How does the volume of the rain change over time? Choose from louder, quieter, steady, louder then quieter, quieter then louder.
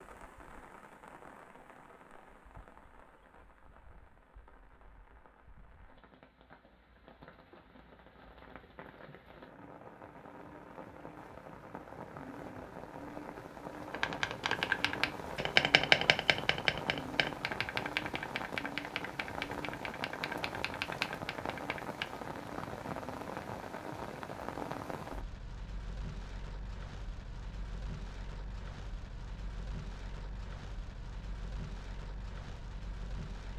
louder then quieter.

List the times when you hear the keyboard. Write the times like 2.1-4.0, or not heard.
13.9-22.1.